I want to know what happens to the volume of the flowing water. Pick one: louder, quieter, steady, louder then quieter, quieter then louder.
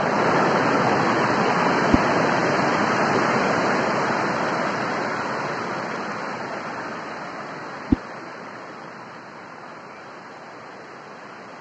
quieter.